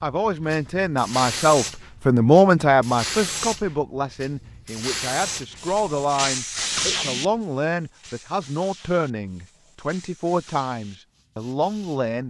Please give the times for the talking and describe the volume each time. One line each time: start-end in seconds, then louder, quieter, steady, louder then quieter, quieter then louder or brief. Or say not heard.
0.0-12.2 quieter.